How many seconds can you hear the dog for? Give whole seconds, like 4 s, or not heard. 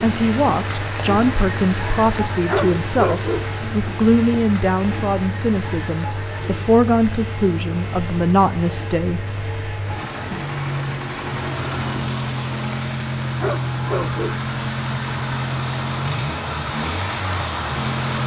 2 s.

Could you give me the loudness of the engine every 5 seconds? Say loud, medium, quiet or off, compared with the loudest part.
medium, medium, loud, loud.